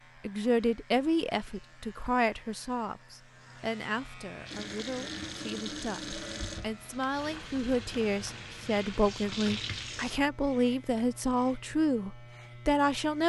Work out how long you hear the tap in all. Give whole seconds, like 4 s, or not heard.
6 s.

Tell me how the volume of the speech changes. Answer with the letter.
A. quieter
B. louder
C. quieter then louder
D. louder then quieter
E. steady
C.